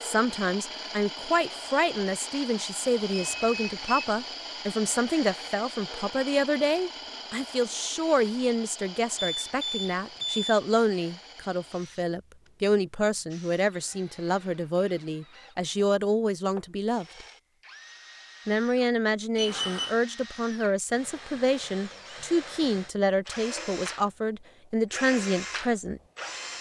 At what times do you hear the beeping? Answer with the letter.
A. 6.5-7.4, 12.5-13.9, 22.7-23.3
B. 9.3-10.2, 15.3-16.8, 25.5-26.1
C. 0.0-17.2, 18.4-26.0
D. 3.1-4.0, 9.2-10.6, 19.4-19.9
D.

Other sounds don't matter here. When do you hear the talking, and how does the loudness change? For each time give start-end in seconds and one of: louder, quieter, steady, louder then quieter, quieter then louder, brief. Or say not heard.
0.0-17.2 steady
18.4-26.0 steady.